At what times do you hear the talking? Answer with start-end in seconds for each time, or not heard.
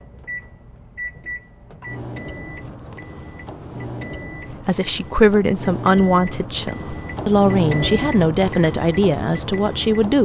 4.7-10.2.